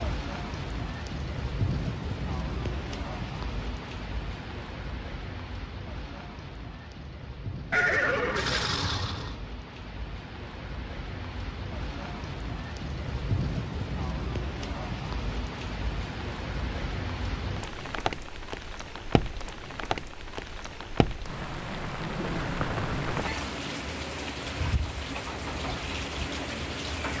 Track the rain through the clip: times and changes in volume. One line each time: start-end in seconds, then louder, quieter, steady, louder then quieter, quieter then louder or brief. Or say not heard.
0.0-27.1 quieter then louder.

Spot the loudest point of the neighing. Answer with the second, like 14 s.
8 s.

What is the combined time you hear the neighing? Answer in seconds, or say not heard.
3 s.